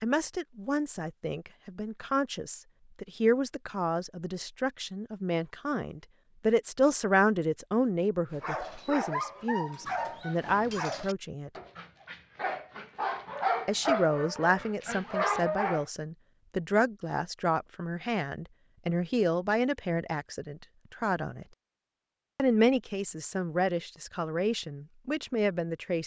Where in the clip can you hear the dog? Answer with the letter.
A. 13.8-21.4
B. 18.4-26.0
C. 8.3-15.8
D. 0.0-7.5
C.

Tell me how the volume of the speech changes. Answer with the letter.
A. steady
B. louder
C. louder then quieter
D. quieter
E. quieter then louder
A.